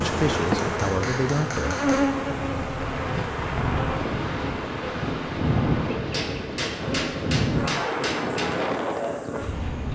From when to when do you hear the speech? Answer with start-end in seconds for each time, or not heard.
0.0-1.8.